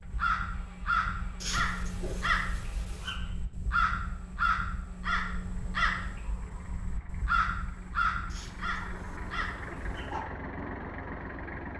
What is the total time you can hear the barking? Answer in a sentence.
You can hear the barking for 4 seconds altogether.